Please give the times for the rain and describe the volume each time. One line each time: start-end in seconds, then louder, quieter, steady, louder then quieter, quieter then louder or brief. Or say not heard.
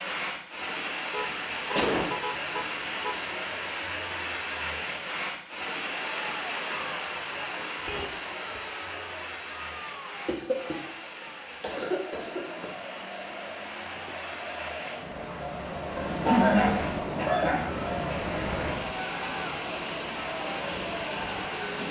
0.0-21.8 quieter then louder.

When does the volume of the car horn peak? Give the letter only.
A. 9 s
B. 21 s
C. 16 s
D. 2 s
C.